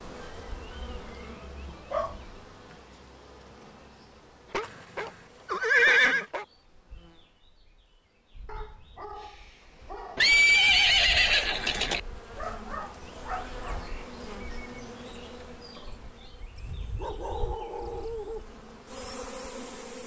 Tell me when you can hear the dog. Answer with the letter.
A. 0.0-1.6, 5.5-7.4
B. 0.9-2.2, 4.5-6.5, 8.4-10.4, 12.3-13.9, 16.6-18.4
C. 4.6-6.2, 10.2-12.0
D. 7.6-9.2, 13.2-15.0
B.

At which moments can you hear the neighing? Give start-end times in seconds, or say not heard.
4.6-6.2, 10.2-12.0.